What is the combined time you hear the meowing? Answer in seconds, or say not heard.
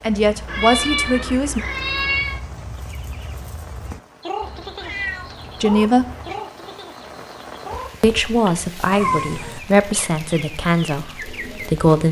5 s.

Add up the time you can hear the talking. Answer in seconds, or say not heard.
6 s.